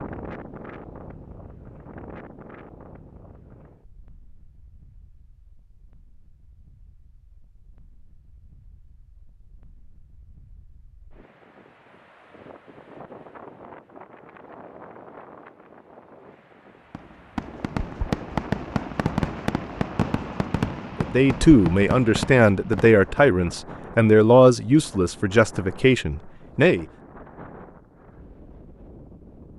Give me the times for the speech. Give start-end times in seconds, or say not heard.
21.0-26.9.